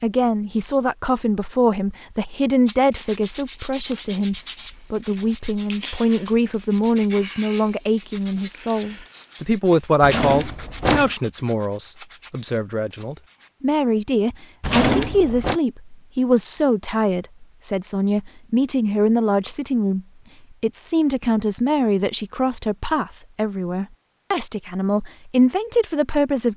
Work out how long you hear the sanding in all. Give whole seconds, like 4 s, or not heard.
11 s.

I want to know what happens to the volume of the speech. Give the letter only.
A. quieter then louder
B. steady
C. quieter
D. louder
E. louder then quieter
B.